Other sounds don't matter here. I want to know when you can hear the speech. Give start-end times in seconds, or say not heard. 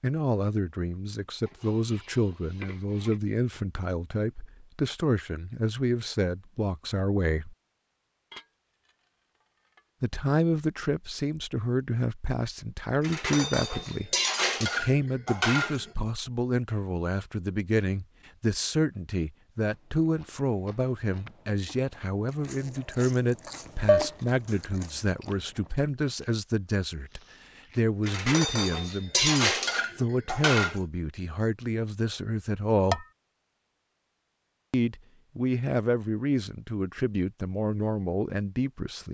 0.0-7.5, 10.0-33.0, 34.7-39.0.